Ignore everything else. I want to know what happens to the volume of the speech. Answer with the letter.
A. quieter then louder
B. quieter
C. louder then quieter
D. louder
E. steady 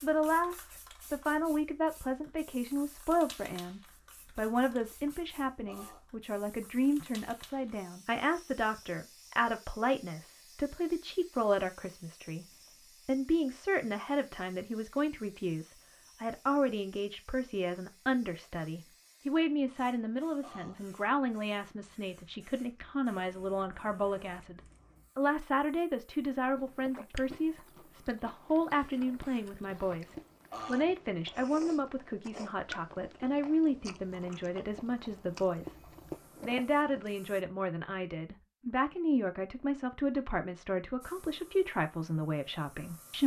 E.